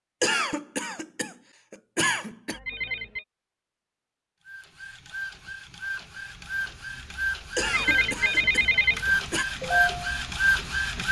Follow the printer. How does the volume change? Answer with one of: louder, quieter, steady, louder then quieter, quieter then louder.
louder.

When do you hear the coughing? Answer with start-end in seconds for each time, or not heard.
0.2-2.6, 7.5-9.4.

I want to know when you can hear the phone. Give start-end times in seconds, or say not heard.
2.5-3.2, 7.6-9.0.